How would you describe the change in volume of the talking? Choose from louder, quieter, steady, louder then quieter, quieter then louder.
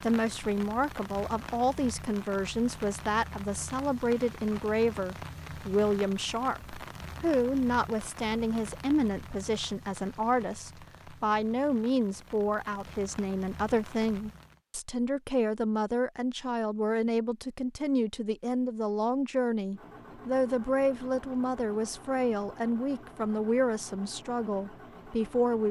steady.